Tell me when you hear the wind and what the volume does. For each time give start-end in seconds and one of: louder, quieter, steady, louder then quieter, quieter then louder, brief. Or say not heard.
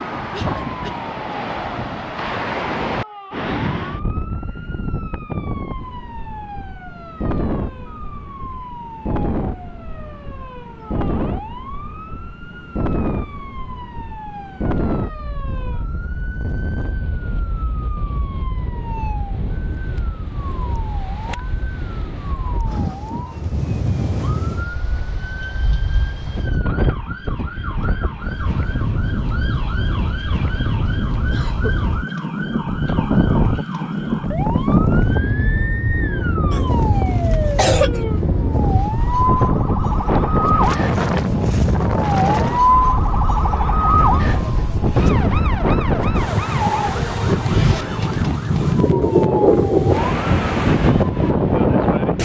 0.0-52.2 louder.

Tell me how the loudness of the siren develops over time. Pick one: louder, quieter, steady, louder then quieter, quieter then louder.
louder.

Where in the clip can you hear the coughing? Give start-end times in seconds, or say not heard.
0.3-1.1, 31.3-32.1, 36.5-38.0.